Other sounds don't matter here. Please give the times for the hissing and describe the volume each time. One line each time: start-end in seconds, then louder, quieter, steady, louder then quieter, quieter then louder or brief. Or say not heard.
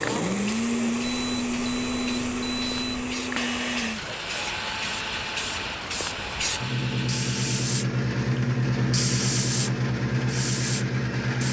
0.0-11.4 louder.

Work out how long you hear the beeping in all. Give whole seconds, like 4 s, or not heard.
2 s.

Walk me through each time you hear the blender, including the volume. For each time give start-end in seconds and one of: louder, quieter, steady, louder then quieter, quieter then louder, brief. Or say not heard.
0.0-11.4 quieter.